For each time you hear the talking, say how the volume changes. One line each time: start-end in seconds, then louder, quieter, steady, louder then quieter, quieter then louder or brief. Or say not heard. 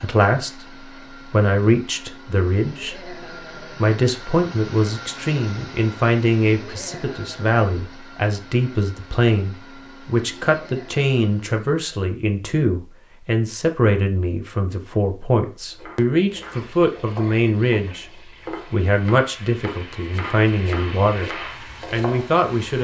0.0-0.7 brief
1.3-21.3 steady
21.9-22.7 brief.